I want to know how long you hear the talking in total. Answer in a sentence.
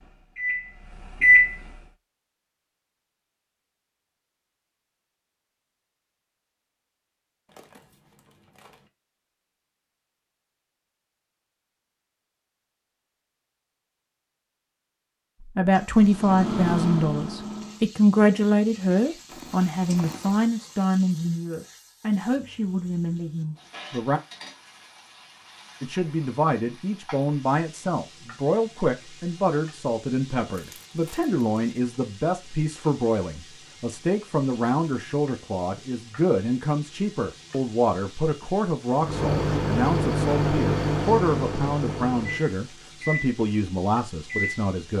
You can hear the talking for 28 seconds altogether.